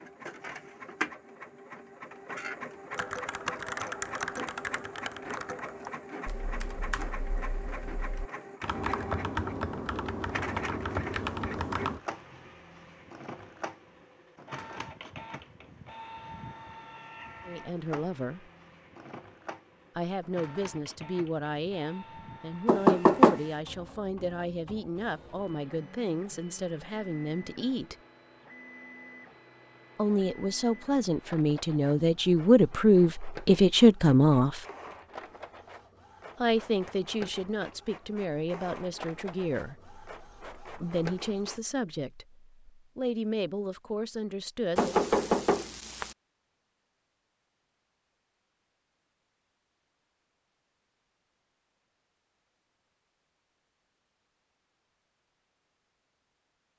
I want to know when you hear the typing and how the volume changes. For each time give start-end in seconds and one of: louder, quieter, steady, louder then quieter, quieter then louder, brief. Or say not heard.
2.9-12.0 quieter then louder.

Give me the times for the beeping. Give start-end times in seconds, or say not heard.
not heard.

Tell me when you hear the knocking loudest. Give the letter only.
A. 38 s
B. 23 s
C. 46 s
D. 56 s
B.